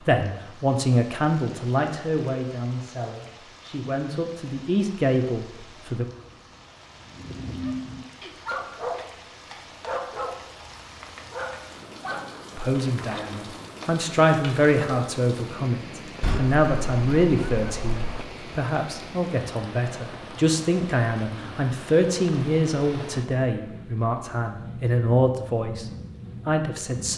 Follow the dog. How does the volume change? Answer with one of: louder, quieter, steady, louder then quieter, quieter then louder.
quieter.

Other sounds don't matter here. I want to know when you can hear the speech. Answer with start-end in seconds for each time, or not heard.
0.1-6.0, 12.6-27.1.